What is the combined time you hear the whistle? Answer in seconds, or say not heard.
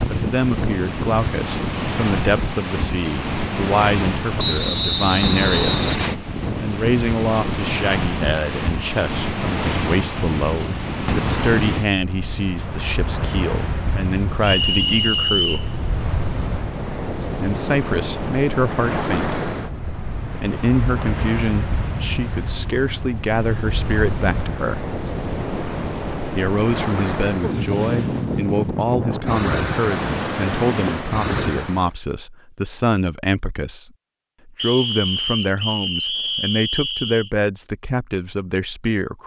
6 s.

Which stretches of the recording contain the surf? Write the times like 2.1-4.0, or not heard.
0.0-31.9.